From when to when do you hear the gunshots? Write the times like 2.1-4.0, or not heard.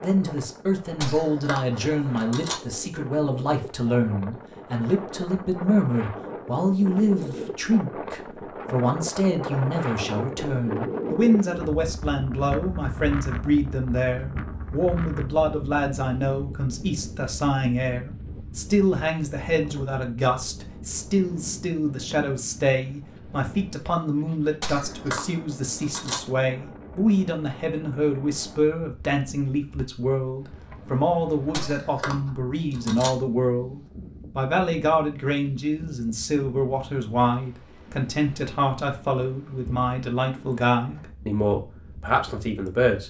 0.8-2.6, 24.5-26.2, 31.4-33.1.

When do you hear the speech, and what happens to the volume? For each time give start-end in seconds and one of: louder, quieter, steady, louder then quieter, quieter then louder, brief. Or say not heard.
0.0-43.0 steady.